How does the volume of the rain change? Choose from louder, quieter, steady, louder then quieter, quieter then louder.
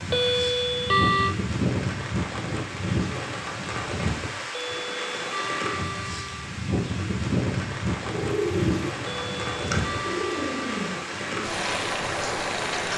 steady.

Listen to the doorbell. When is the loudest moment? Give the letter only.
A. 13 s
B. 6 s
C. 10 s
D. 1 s
D.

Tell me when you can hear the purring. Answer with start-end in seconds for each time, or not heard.
8.0-12.9.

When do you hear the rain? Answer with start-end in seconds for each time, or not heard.
0.0-12.9.